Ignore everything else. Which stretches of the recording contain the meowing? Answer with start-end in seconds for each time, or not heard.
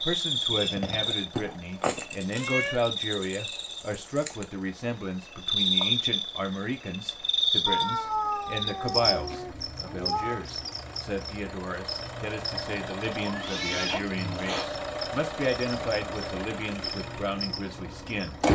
1.4-2.8, 7.7-10.4, 13.2-14.7.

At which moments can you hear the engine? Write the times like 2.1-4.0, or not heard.
0.0-18.5.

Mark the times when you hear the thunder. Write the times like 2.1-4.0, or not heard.
not heard.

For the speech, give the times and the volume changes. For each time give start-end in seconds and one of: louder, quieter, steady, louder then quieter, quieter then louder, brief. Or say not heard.
0.0-18.4 steady.